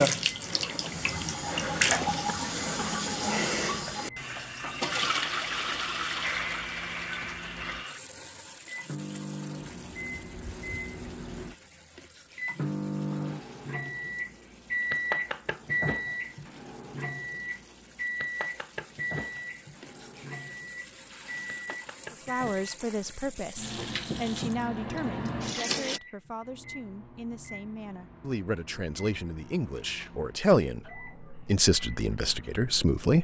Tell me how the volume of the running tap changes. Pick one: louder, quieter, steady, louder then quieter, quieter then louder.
quieter then louder.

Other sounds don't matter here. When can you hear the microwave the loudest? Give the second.
15 s.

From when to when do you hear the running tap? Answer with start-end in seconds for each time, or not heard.
0.0-26.0.